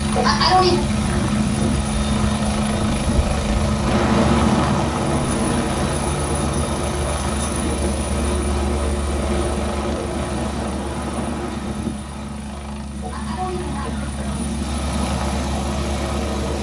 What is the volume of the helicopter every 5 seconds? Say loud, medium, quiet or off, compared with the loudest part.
loud, loud, medium, loud.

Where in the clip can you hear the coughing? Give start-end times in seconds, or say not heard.
0.1-0.8, 13.0-14.5.